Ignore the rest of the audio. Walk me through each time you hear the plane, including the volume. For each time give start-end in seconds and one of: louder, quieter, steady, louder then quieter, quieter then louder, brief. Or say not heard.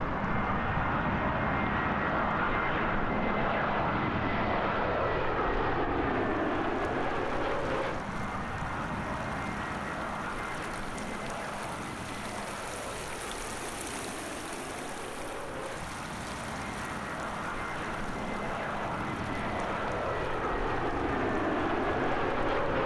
0.0-22.8 quieter then louder.